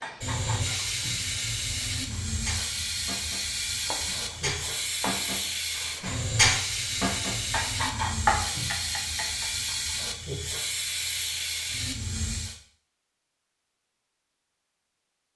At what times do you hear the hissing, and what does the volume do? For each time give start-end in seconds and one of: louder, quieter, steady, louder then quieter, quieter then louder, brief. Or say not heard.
0.0-12.6 steady.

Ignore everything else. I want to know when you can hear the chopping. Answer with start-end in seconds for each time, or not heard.
3.9-5.2, 8.2-9.3.